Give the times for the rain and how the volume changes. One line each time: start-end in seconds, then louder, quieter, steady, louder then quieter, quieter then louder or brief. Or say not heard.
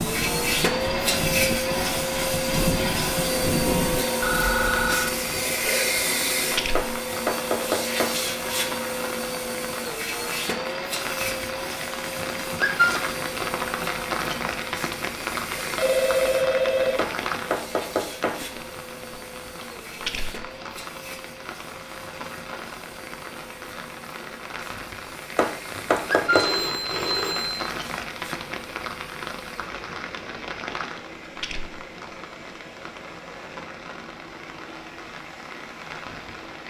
0.0-36.6 quieter.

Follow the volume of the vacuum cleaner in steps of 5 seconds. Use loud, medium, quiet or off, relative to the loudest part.
loud, loud, medium, quiet, quiet, quiet, quiet, quiet.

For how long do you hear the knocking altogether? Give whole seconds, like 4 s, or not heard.
5 s.